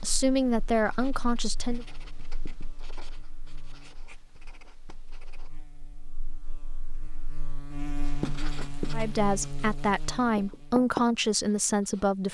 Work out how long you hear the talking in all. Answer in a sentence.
The talking can be heard for 5 seconds in total.